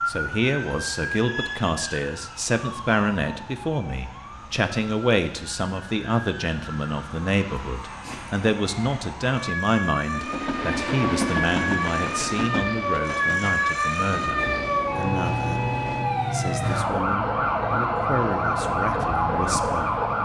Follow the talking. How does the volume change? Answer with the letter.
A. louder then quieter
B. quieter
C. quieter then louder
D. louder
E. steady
B.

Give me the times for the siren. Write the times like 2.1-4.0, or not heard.
0.0-20.2.